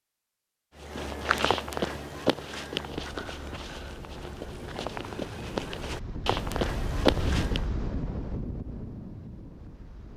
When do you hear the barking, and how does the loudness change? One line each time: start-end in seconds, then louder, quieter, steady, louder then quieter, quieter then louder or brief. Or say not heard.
not heard.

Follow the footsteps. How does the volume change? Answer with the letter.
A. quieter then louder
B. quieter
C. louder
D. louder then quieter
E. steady
A.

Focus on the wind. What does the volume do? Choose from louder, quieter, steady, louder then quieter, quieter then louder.
louder then quieter.